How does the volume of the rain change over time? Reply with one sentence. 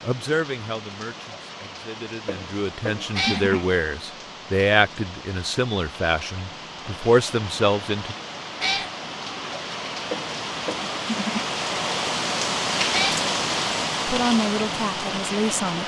The loudness of the rain goes up.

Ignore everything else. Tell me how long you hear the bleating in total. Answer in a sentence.
You can hear the bleating for 3 seconds altogether.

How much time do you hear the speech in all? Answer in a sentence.
The speech can be heard for 10 seconds in total.